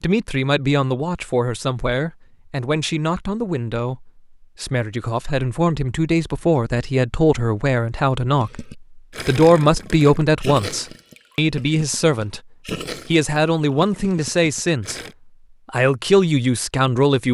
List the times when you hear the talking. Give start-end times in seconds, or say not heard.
0.0-12.4, 13.1-15.0, 15.7-17.3.